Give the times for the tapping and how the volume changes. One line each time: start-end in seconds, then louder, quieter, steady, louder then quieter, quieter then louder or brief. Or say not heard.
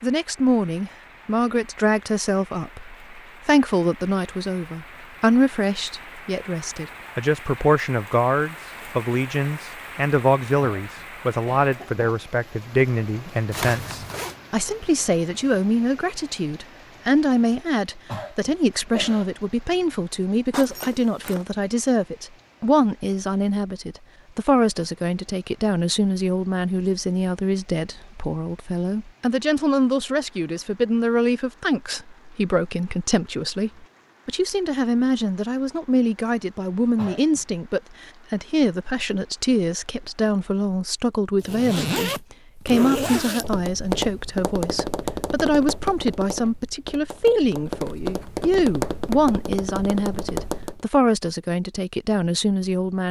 43.4-50.8 quieter then louder.